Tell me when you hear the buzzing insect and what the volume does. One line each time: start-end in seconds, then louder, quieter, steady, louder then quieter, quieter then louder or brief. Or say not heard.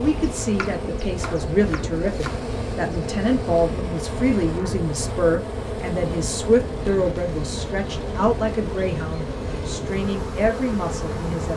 0.0-11.5 steady.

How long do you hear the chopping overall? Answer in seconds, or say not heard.
2 s.